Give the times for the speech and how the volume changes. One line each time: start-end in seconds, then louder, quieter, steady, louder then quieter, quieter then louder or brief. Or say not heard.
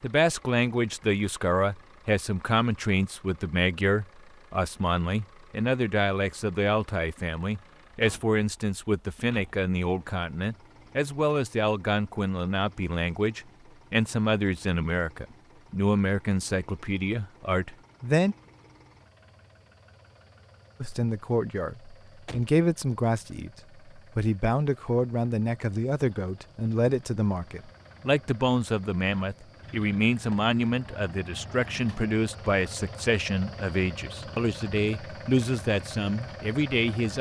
0.0-18.4 steady
20.8-37.1 steady.